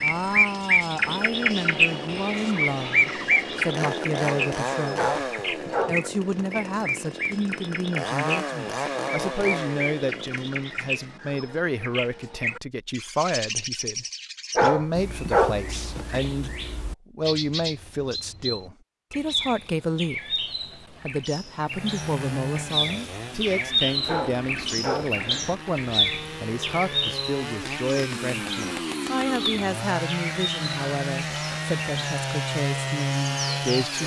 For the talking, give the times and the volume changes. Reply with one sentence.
The talking can be heard from 0.0 to 5.1 s, at a steady volume; and from 5.8 to 34.0 s, at a steady volume.